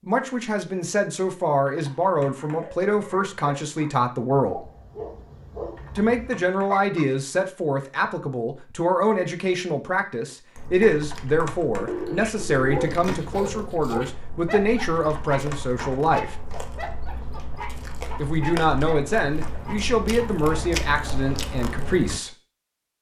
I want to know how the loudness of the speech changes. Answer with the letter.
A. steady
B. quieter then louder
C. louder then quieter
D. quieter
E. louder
A.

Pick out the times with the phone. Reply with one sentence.
The phone can be heard from 11.8 to 13.3 s.